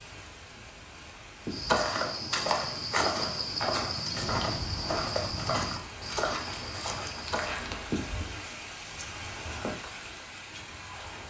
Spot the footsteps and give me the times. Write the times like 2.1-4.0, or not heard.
1.5-7.6.